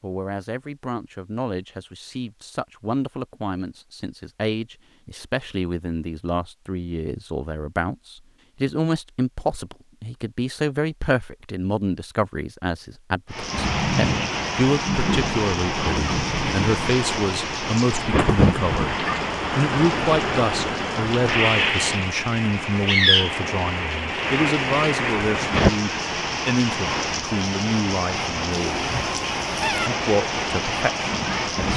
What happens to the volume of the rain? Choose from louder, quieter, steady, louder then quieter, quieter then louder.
steady.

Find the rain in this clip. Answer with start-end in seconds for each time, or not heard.
13.3-31.7.